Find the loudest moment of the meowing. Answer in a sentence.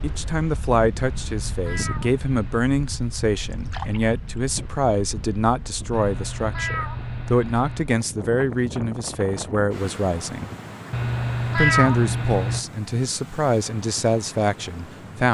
The loudest moment of the meowing is at 12 seconds.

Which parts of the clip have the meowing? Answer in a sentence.
You can hear the meowing from 1.0 to 2.6 s, from 5.9 to 7.9 s and from 10.9 to 12.7 s.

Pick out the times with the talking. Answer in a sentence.
The talking can be heard from 0.0 to 10.5 s and from 11.6 to 15.2 s.